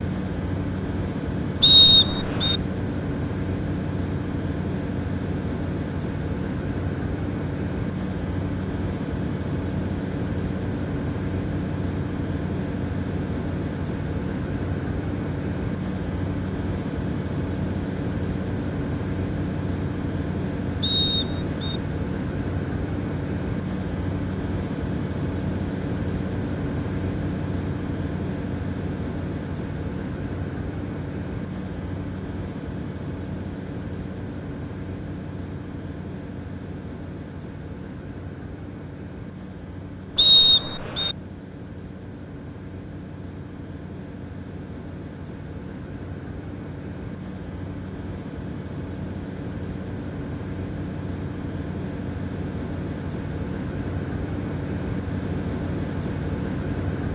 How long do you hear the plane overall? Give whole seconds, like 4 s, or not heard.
57 s.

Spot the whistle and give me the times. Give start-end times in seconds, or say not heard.
1.6-2.6, 20.8-21.8, 40.1-41.1.